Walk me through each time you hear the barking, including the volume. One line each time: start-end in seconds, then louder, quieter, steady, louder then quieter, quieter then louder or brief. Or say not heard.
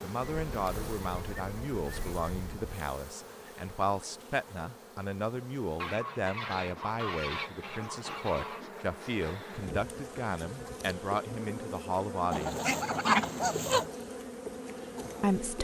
not heard.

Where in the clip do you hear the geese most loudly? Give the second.
13 s.